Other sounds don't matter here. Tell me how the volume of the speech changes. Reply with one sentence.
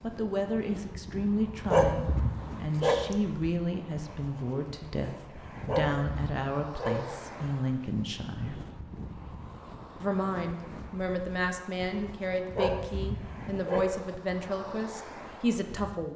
The volume of the speech stays about the same.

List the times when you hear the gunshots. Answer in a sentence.
The gunshots can't be heard in this clip.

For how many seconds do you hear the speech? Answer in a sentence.
You can hear the speech for 15 seconds altogether.